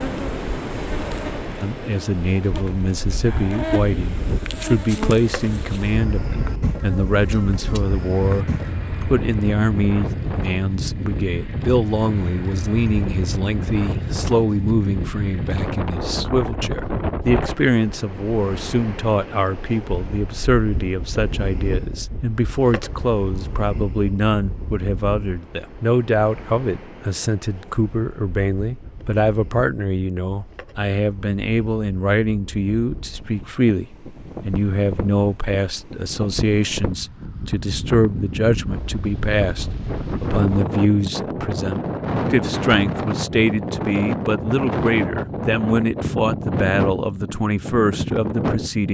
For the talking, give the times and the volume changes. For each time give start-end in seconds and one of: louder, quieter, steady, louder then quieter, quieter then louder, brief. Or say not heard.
1.6-48.8 steady.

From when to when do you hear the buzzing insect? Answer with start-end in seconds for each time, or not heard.
0.0-8.8.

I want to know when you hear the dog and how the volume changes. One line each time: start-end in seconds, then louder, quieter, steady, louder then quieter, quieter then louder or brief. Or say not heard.
not heard.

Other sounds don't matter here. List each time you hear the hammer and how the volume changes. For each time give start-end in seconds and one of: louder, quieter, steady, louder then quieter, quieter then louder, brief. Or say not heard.
not heard.